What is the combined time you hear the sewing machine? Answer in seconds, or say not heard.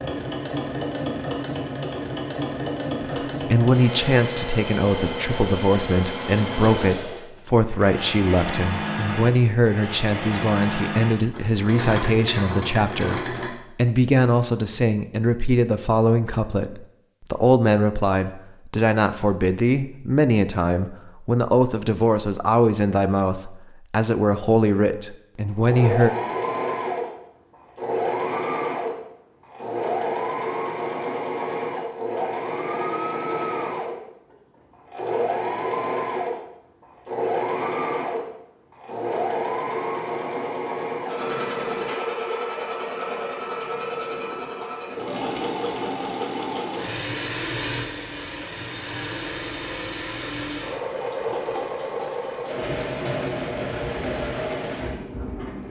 44 s.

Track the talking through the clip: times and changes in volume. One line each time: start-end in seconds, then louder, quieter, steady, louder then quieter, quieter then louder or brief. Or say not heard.
3.1-26.1 steady.